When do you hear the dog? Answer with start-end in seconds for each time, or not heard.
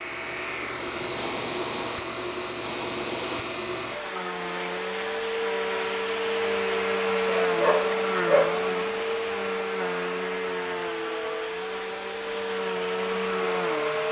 7.2-9.1.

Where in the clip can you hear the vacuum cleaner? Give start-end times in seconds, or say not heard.
0.0-14.0.